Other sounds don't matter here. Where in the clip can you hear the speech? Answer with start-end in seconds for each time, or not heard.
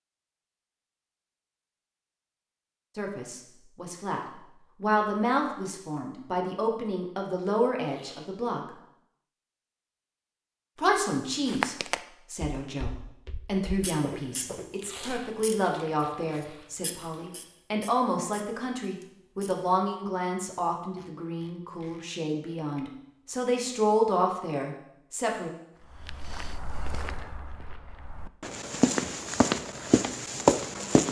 3.0-4.2, 4.8-8.6, 10.8-25.5.